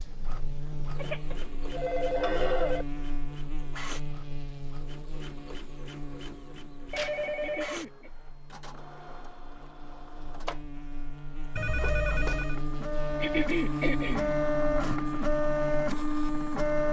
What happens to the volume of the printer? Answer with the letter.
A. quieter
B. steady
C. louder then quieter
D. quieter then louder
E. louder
E.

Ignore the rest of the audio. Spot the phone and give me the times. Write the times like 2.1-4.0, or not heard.
0.9-2.9, 6.9-7.8, 11.6-12.6.